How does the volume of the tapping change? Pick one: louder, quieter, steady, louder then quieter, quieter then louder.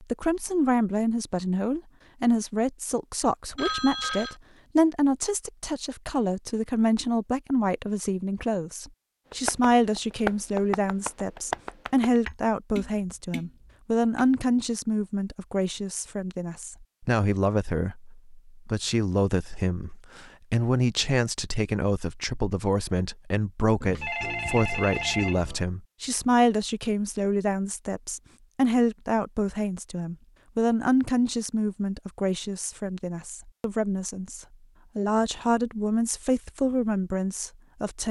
quieter.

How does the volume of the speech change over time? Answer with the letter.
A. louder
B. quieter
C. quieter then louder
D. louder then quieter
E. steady
E.